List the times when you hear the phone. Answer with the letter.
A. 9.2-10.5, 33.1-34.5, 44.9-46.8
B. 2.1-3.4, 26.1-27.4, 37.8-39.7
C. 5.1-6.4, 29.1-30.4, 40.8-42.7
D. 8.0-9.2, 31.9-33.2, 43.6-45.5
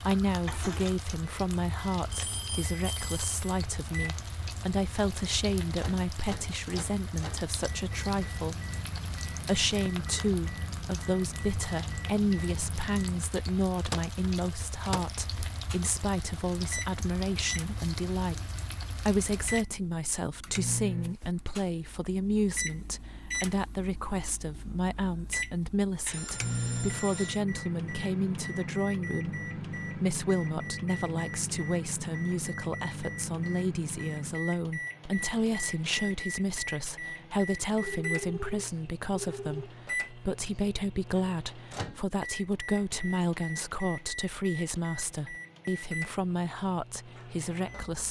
B.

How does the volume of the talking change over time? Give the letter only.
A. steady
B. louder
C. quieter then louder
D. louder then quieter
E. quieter
A.